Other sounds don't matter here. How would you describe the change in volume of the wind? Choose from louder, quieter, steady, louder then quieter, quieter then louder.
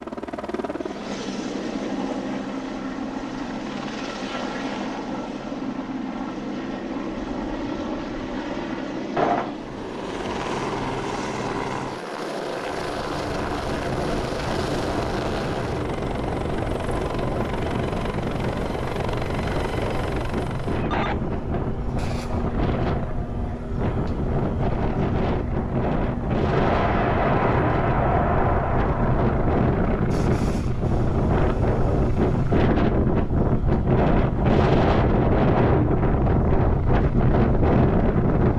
louder.